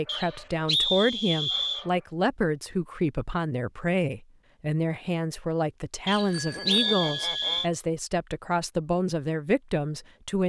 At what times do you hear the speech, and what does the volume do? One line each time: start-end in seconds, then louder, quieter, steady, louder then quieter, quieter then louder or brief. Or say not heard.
0.0-10.4 steady.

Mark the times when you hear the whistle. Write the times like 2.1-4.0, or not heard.
0.1-1.9, 6.0-7.7.